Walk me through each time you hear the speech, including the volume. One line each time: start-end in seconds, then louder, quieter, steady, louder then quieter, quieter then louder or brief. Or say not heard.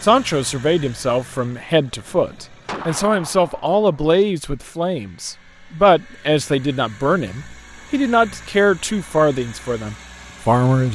0.0-10.9 steady.